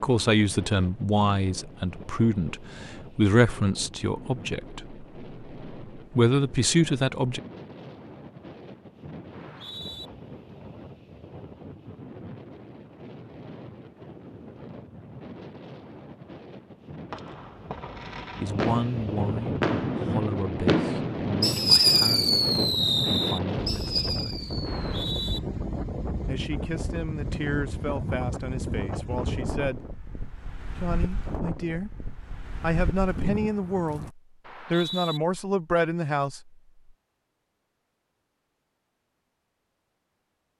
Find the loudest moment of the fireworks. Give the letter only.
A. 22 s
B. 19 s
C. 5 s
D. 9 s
A.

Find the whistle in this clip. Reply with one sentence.
You can hear the whistle from 9.3 to 10.1 s, from 24.6 to 25.4 s and from 34.5 to 35.2 s.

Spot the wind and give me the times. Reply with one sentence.
The wind can be heard from 0.0 to 34.1 s.